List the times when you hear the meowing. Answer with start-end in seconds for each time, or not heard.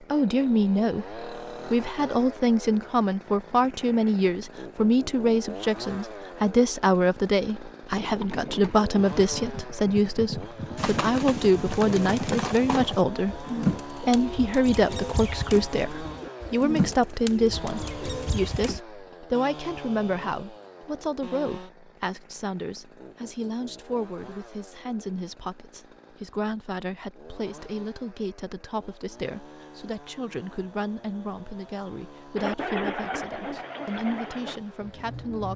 not heard.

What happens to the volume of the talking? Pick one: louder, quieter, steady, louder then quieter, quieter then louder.
quieter.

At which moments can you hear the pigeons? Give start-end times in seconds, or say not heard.
10.8-18.8, 32.4-35.5.